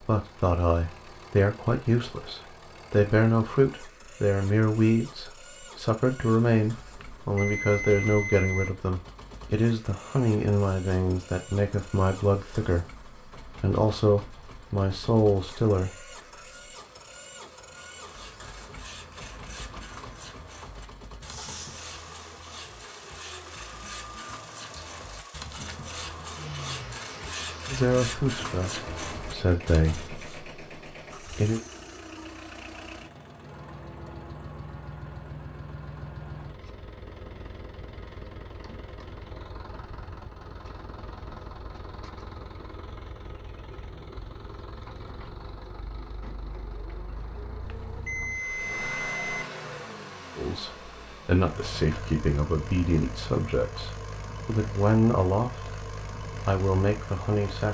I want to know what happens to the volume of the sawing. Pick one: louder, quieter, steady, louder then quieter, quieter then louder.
louder.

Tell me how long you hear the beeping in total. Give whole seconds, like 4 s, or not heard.
4 s.